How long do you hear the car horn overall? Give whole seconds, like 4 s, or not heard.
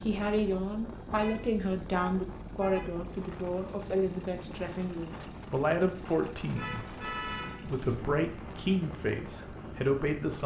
3 s.